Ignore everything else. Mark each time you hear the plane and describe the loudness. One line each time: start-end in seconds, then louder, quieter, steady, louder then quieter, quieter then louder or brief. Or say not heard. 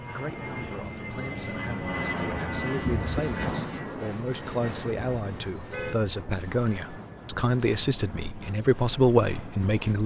0.0-10.0 quieter.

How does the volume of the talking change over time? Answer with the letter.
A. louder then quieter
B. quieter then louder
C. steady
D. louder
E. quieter
D.